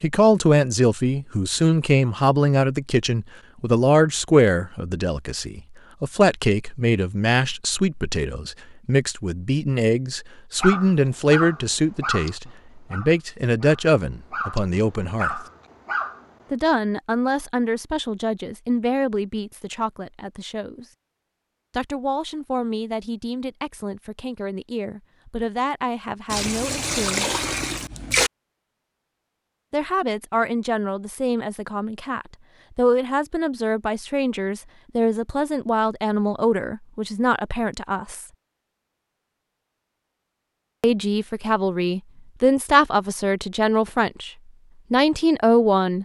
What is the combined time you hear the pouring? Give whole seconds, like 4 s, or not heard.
2 s.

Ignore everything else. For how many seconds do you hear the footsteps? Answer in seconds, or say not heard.
not heard.